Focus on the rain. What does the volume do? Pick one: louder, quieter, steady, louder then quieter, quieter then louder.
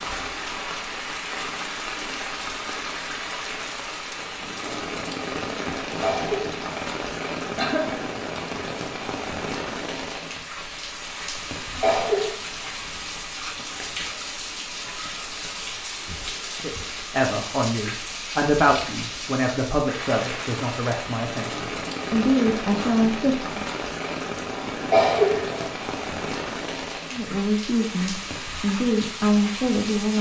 steady.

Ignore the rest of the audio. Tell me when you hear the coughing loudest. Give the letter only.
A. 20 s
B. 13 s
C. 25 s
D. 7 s
C.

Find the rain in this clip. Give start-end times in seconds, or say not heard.
0.0-30.1.